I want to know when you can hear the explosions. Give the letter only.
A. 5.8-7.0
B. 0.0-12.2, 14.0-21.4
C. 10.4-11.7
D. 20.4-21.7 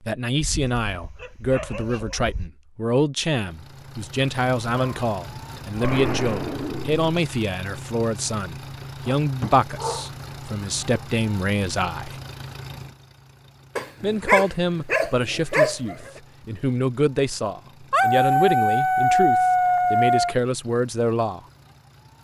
A.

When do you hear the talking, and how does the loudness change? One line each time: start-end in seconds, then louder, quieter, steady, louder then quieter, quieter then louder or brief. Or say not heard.
0.0-12.2 steady
14.0-21.4 steady.